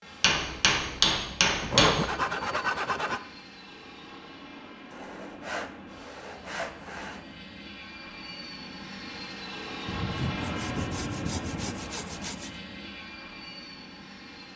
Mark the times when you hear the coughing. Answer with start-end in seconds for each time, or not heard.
not heard.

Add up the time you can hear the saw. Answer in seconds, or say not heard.
7 s.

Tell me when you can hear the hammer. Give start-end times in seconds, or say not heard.
0.2-2.1.